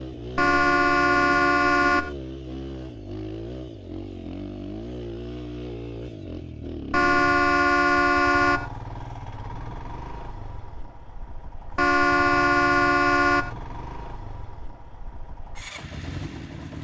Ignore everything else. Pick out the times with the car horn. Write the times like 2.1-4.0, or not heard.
0.3-2.1, 6.9-8.7, 11.8-13.6.